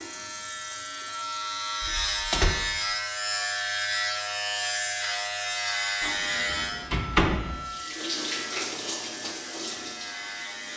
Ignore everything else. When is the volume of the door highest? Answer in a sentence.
The loudest moment of the door is at 7 seconds.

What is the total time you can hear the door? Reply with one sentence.
You can hear the door for 2 seconds altogether.